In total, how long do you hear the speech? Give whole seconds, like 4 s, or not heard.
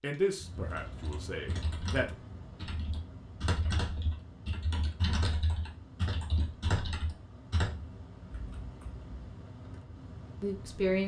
3 s.